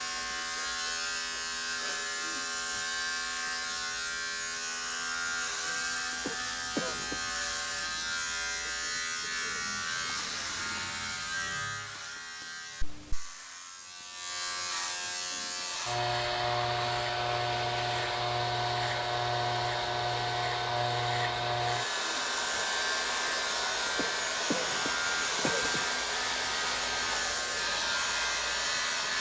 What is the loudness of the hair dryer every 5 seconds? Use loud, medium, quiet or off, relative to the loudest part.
off, off, off, loud, loud, loud.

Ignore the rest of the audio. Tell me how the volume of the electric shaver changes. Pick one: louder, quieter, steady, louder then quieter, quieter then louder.
steady.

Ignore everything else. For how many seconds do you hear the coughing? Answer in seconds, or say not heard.
3 s.